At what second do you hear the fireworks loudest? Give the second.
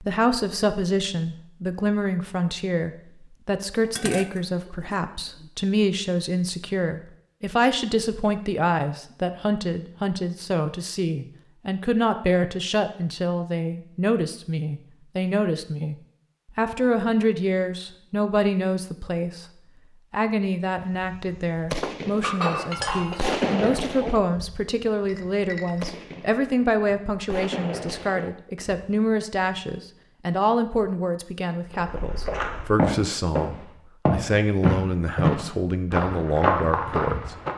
23 s.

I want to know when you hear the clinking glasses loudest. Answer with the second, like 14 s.
22 s.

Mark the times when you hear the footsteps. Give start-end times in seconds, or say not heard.
31.7-37.5.